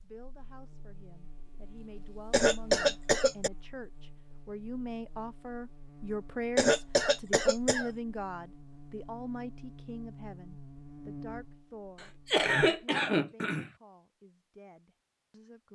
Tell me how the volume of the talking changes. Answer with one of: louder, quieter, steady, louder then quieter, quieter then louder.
louder then quieter.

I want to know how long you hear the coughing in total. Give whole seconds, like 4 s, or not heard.
4 s.